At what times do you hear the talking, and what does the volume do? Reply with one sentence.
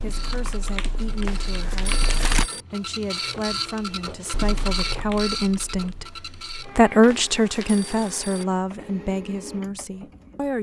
You can hear the talking from 0.0 to 10.5 s, getting louder then quieter.